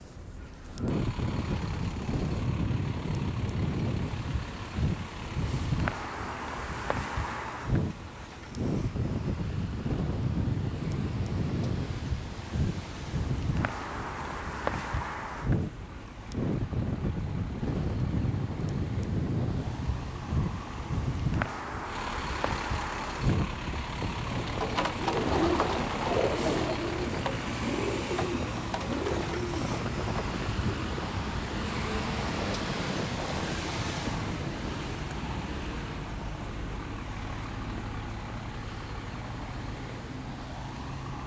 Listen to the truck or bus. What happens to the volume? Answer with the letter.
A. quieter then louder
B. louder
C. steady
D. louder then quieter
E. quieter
B.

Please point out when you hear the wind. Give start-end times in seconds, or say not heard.
0.0-34.8.